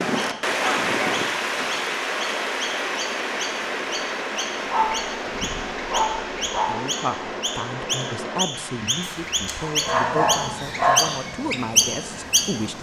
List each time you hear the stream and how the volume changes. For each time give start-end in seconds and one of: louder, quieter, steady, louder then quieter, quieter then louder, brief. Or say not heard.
0.0-12.7 quieter.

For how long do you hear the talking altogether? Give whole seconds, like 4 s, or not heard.
6 s.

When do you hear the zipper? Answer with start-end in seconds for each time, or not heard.
not heard.